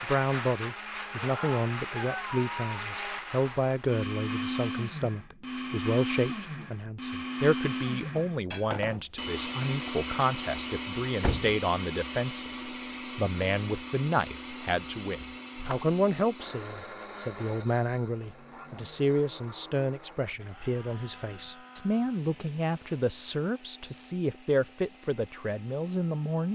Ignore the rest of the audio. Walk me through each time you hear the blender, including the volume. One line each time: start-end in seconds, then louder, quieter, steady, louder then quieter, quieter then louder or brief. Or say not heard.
0.0-26.5 quieter.